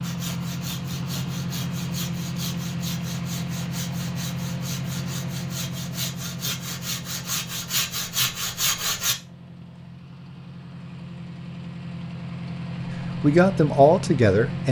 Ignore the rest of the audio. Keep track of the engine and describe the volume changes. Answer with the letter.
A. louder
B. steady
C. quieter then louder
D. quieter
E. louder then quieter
C.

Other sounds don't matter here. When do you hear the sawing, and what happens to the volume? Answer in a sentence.
You can hear the sawing from 0.0 to 9.2 s, getting louder.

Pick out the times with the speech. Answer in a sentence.
You can hear the speech from 13.2 to 14.6 s.